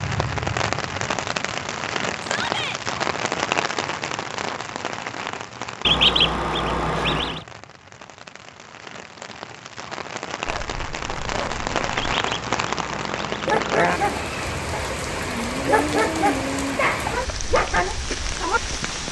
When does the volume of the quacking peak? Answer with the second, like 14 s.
6 s.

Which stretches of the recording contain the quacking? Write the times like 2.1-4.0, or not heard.
5.8-7.5, 11.9-13.8.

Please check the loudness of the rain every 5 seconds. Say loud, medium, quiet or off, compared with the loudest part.
loud, medium, loud, loud.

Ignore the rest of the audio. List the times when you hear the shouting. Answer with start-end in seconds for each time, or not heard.
2.2-2.8.